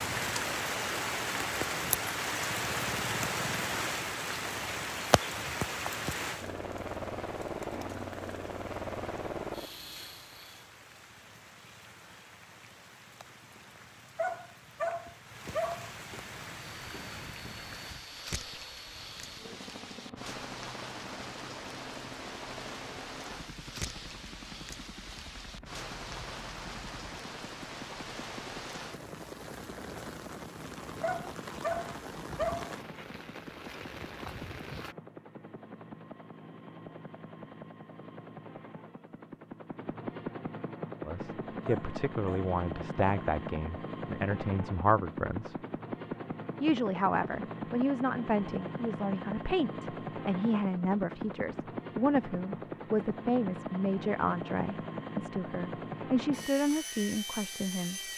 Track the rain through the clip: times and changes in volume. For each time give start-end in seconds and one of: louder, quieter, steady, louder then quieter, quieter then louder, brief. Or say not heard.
0.0-35.0 quieter then louder.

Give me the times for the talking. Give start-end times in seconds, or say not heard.
41.0-45.5, 46.6-58.0.